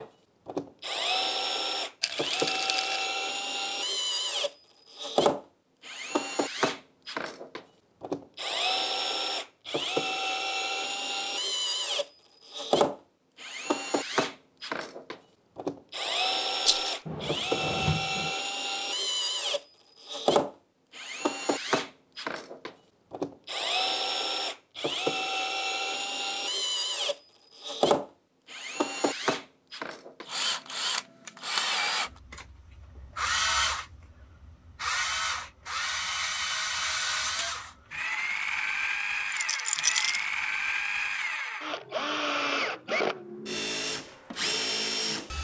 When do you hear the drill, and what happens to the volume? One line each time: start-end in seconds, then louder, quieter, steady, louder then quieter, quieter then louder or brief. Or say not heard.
0.0-45.3 steady.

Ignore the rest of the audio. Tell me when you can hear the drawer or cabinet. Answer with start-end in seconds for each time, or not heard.
17.1-18.4.